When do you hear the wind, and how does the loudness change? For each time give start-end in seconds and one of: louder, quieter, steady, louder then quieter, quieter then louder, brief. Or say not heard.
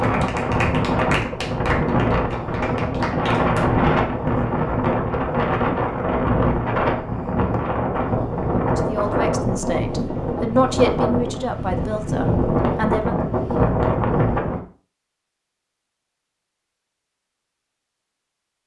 0.0-14.6 steady.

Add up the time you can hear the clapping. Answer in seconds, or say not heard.
4 s.